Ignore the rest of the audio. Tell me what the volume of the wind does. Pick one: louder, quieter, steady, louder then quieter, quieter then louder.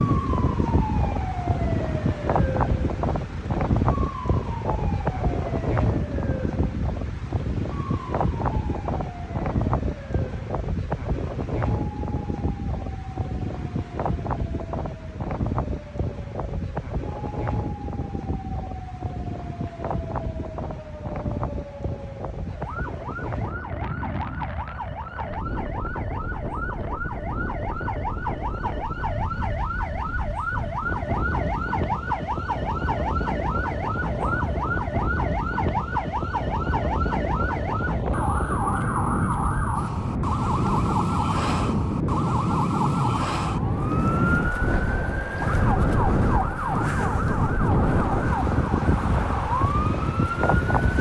quieter then louder.